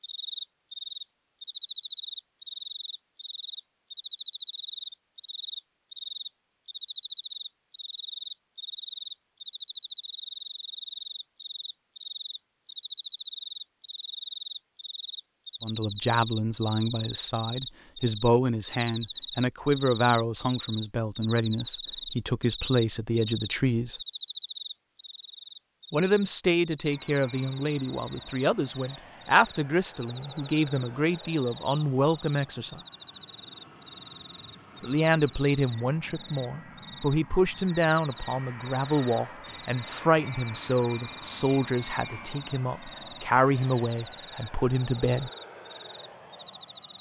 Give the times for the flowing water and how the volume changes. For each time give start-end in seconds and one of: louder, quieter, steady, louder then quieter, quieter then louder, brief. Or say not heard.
not heard.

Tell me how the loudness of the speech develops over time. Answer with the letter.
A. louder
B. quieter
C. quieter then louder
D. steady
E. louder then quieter
D.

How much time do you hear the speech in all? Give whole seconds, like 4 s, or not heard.
26 s.